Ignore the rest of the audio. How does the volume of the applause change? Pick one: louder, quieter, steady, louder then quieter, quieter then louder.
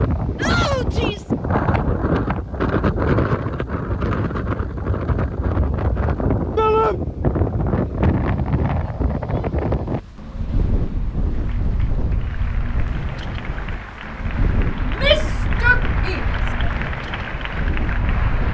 louder.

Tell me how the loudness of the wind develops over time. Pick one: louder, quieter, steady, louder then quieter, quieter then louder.
quieter.